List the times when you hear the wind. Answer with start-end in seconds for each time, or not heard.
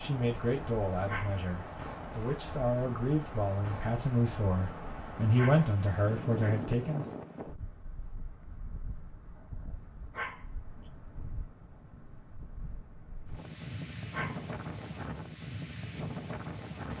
0.0-16.9.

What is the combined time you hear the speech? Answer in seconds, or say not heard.
7 s.